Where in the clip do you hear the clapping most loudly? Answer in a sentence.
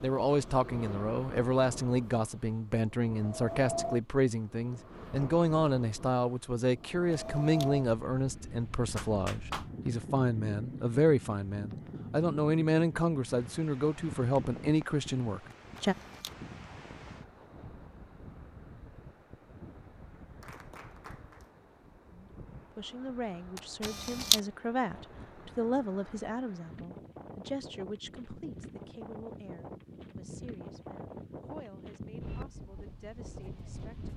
The loudest moment of the clapping is at 9 seconds.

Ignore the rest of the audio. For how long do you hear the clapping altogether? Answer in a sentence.
The clapping can be heard for 2 seconds in total.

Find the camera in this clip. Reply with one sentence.
The camera can be heard from 6.8 to 7.7 s, from 15.5 to 16.4 s and from 23.6 to 24.4 s.